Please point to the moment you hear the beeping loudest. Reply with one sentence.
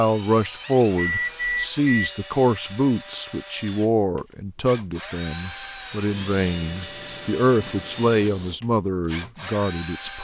The volume of the beeping peaks at 1 second.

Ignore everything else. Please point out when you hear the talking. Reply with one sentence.
You can hear the talking from 0.0 to 10.1 s.